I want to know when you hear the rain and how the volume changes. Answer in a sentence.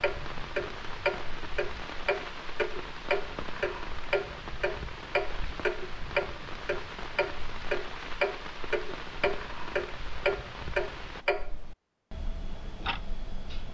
You can hear the rain from 0.0 to 11.2 s, at a steady volume.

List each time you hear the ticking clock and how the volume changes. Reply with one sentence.
The ticking clock can be heard from 0.0 to 13.6 s, at a steady volume.